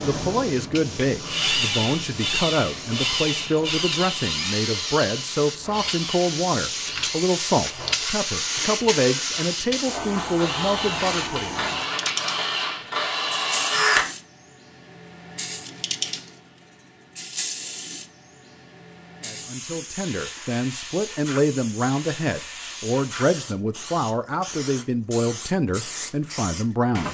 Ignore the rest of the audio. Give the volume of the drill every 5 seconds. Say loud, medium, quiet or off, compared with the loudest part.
loud, medium, loud, off, off, off.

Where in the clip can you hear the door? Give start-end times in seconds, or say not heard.
not heard.